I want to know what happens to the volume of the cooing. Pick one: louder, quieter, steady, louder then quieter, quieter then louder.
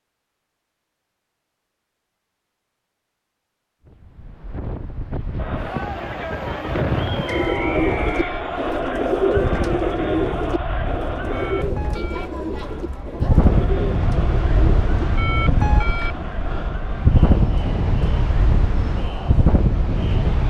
quieter.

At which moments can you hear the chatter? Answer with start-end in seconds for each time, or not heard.
5.3-20.4.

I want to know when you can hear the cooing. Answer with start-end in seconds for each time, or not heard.
7.2-15.9.